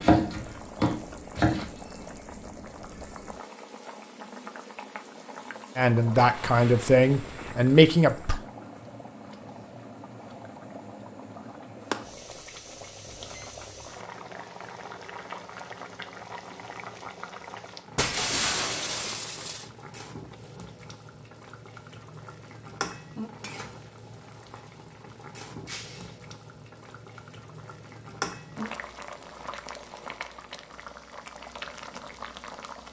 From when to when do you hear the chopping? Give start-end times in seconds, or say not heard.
0.0-1.6.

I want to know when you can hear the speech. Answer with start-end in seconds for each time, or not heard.
5.8-8.4.